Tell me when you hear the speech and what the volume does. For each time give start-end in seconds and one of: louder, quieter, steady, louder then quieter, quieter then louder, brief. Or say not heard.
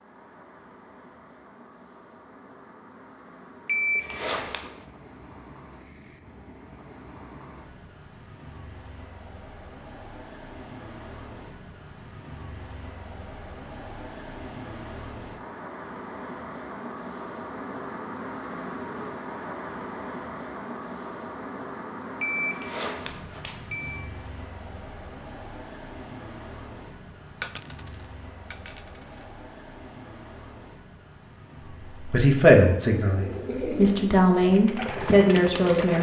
31.9-35.9 quieter then louder.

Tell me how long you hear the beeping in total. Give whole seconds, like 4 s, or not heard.
3 s.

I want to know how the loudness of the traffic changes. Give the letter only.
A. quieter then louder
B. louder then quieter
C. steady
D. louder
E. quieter
B.